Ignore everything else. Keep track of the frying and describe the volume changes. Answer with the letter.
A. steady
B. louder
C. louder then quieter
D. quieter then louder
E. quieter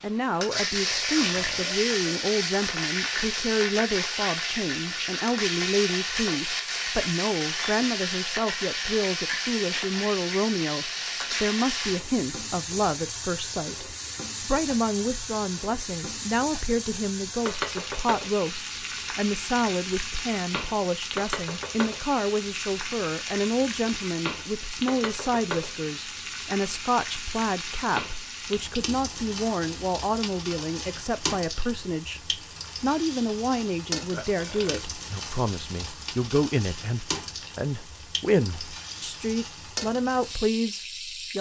E.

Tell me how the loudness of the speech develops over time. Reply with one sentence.
The loudness of the speech stays about the same.